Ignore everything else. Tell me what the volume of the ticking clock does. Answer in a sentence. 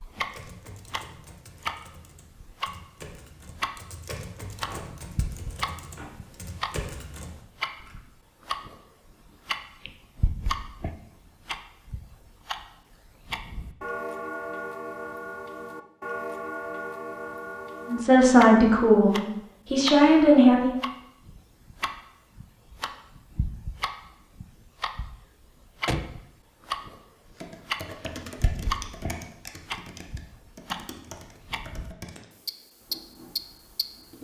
The loudness of the ticking clock stays about the same.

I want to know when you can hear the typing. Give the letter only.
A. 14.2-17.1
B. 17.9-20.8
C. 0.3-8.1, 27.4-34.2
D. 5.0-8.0
C.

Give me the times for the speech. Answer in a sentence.
You can hear the speech from 17.9 to 20.8 s.